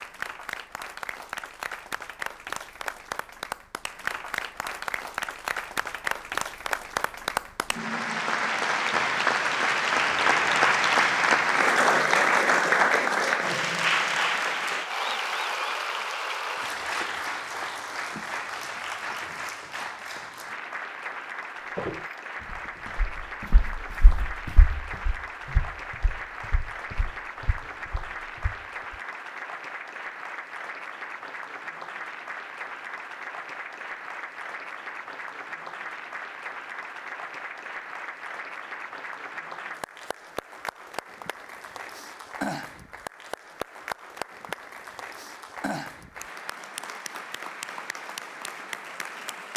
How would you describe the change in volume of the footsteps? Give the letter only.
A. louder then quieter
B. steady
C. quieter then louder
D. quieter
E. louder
A.